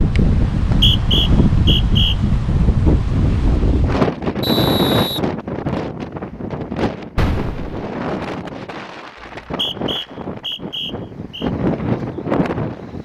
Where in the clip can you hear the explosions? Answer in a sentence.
You can hear the explosions from 7.2 to 7.9 s.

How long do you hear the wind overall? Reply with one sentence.
The wind can be heard for 13 seconds in total.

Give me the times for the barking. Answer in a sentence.
The barking can't be heard in this clip.